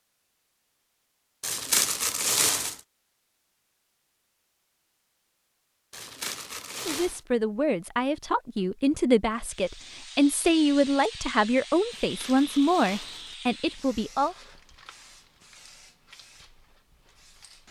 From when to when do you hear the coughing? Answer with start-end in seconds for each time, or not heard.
not heard.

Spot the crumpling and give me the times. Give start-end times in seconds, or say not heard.
1.4-2.8, 5.9-7.2, 11.9-13.3.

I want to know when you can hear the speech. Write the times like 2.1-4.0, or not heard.
6.8-14.3.